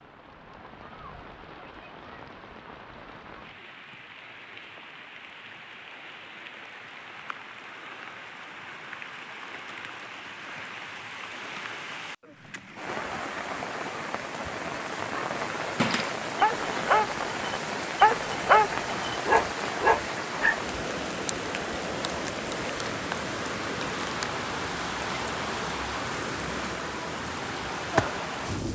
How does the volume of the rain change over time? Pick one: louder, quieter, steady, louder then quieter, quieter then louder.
louder.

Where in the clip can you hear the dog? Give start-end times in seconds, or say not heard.
15.2-20.6.